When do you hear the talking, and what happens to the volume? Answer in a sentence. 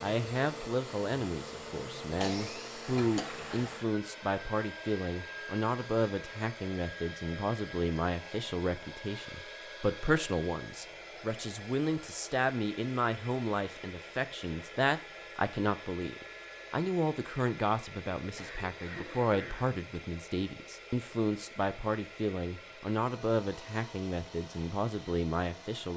You can hear the talking from 0.0 to 25.9 s, at a steady volume.